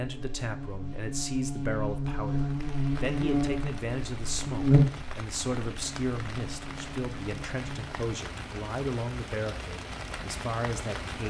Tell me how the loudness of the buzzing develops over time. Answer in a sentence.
The volume of the buzzing goes up, then down.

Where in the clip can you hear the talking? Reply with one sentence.
The talking can be heard from 0.0 to 11.2 s.